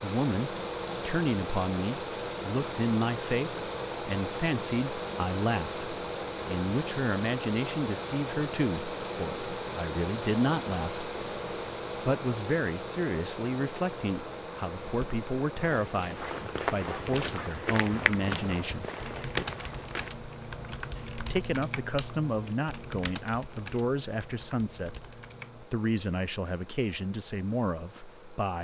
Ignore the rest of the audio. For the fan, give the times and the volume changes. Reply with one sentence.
The fan can be heard from 0.0 to 28.5 s, getting quieter.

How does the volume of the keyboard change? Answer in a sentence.
The volume of the keyboard goes down.